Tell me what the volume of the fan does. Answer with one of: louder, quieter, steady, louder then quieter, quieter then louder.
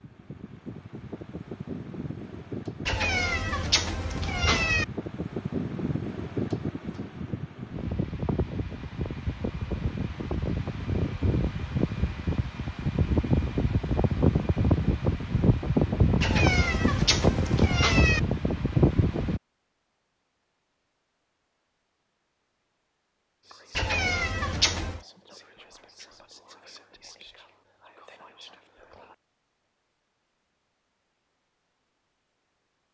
louder.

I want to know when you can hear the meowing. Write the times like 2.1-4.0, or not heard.
2.9-4.8, 16.2-18.2, 23.8-25.0.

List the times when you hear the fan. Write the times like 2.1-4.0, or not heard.
0.0-19.4.